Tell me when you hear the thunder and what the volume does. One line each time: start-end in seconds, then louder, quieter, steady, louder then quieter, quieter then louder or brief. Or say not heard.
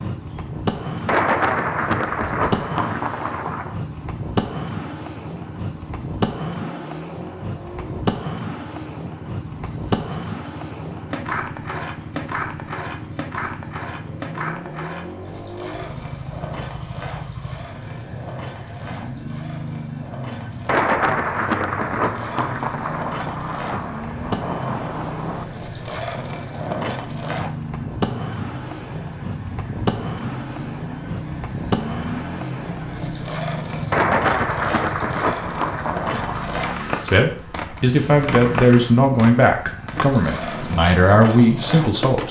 1.1-3.8 brief
20.6-25.4 quieter
33.9-36.5 brief.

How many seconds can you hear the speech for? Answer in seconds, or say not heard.
5 s.